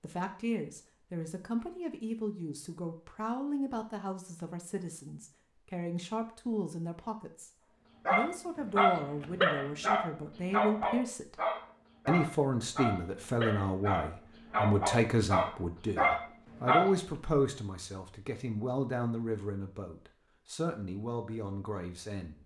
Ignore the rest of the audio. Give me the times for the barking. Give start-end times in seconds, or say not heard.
8.1-16.9.